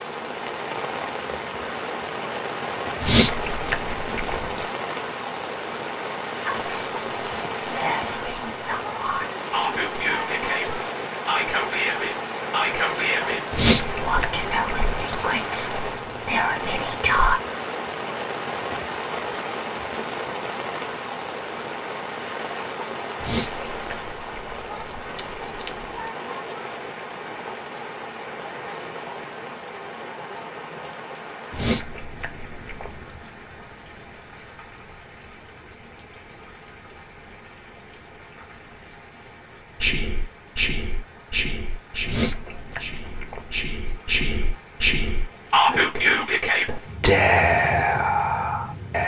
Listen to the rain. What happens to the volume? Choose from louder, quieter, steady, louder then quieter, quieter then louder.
quieter.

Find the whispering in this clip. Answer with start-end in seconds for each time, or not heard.
6.4-17.4, 39.8-49.0.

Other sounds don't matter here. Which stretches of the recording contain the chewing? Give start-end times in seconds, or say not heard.
3.0-4.7, 13.5-15.3, 23.2-26.1, 31.5-33.1, 42.0-43.5.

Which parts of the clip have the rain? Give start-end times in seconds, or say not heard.
0.0-49.0.